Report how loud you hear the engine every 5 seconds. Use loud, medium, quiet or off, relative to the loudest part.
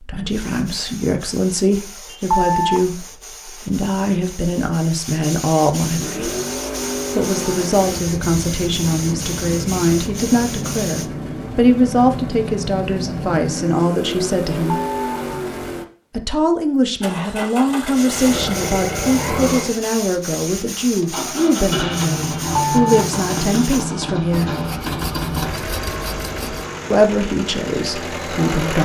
off, loud, loud, loud, loud, loud.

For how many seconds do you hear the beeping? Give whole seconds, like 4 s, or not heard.
2 s.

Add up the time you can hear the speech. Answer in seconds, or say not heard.
24 s.